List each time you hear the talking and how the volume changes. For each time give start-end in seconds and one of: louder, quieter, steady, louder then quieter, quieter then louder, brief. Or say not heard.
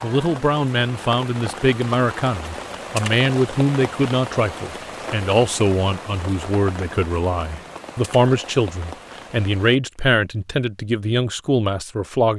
0.0-12.3 steady.